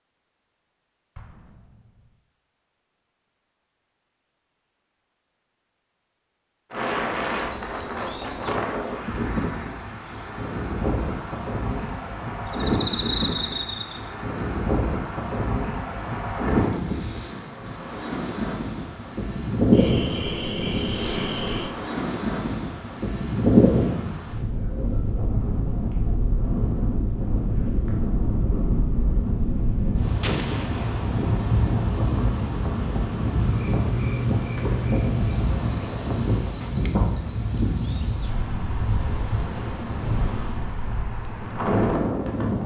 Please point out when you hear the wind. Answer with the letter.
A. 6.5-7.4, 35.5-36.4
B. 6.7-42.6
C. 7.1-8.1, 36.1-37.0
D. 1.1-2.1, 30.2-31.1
B.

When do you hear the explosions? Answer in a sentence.
You can hear the explosions from 1.1 to 2.1 s and from 30.2 to 31.1 s.